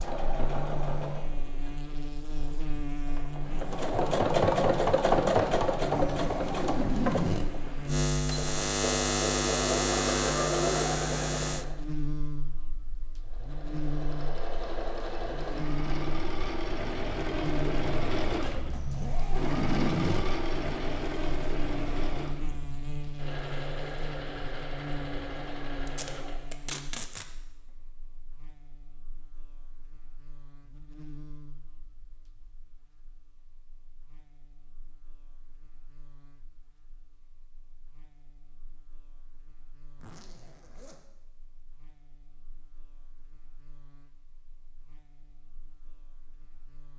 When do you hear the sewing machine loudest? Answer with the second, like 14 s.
5 s.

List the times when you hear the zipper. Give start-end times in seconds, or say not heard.
6.0-7.5, 18.7-20.3, 40.0-41.0.